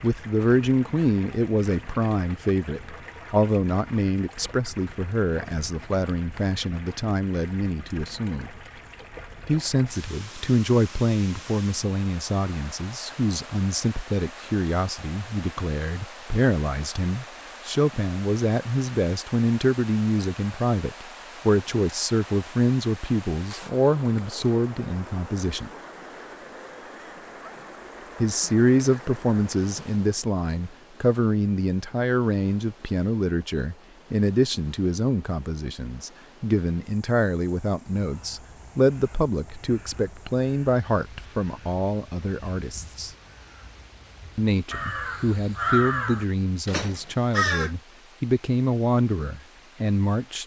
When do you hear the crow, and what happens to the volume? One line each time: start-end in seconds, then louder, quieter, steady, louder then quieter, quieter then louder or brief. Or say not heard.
38.0-47.7 louder.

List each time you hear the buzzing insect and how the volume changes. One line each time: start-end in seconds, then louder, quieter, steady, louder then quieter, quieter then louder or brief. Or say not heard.
not heard.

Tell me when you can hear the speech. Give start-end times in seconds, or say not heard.
0.0-8.5, 9.4-25.7, 28.2-43.1, 44.4-50.4.